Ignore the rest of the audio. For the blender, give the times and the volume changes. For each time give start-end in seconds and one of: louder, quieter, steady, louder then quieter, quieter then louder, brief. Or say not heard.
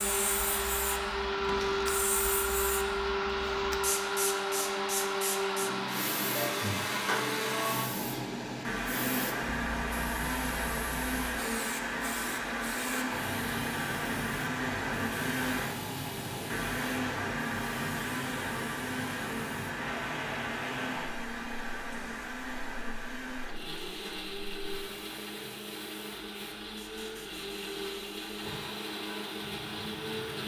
0.0-30.4 quieter.